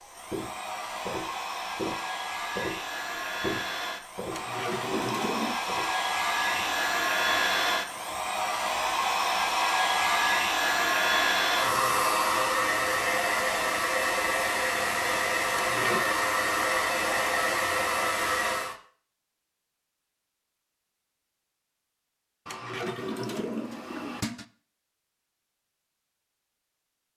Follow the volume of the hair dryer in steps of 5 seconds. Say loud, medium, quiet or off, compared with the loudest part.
medium, loud, loud, loud, off, off.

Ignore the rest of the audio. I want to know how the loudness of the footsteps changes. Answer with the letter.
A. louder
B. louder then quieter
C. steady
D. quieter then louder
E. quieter
E.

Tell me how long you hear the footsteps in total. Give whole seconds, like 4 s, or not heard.
8 s.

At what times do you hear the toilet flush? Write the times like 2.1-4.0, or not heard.
4.3-5.5, 15.5-16.1, 22.4-24.4.